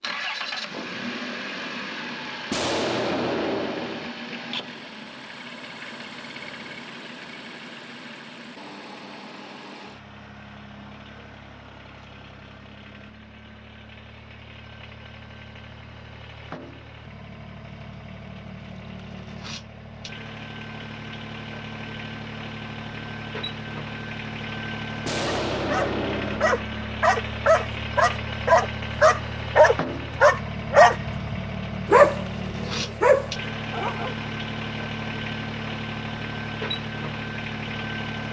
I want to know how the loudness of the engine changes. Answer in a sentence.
The volume of the engine goes down, then up.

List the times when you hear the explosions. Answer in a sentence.
The explosions can be heard from 2.5 to 4.1 s and from 25.1 to 26.6 s.